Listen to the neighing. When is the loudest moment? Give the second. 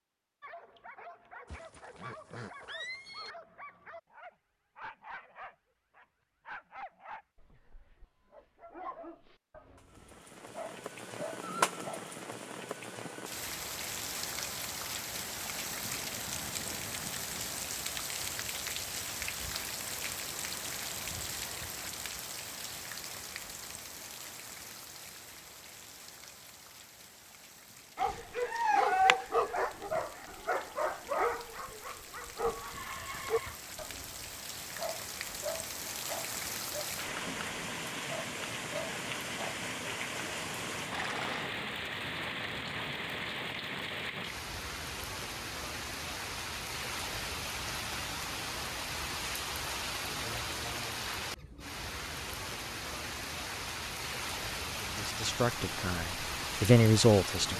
41 s.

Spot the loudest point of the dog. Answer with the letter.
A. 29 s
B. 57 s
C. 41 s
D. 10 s
A.